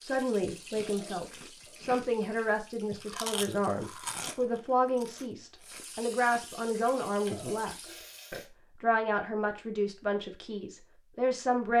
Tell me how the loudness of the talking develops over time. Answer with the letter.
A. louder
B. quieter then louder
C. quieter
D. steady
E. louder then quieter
D.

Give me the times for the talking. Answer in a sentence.
You can hear the talking from 0.0 to 11.7 s.